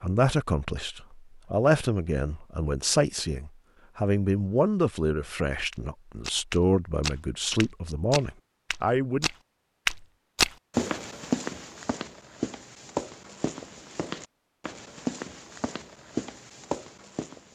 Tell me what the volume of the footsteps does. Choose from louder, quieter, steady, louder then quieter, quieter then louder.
louder then quieter.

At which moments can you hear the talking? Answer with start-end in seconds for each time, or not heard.
0.0-9.3.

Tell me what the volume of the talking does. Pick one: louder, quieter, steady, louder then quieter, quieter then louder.
steady.